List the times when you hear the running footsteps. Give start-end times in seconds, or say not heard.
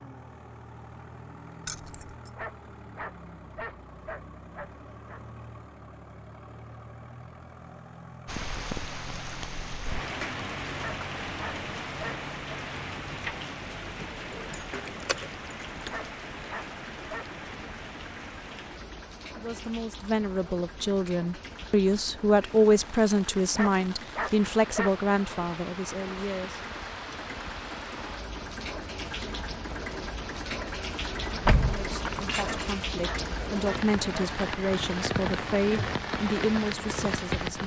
not heard.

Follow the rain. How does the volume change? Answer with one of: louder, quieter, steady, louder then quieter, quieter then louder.
quieter then louder.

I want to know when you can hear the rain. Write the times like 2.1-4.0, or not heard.
8.2-37.6.